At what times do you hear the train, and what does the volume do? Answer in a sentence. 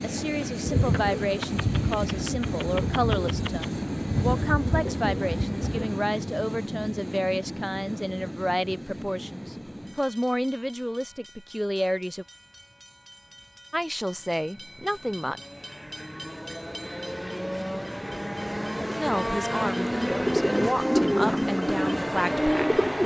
The train can be heard from 0.0 to 23.0 s, getting quieter then louder.